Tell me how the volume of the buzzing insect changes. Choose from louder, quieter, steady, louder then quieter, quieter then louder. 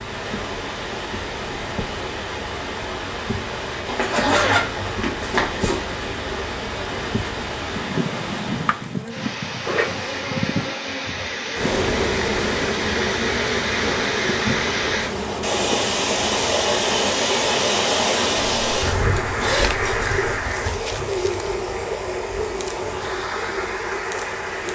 louder then quieter.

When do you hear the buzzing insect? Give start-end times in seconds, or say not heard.
0.0-24.6.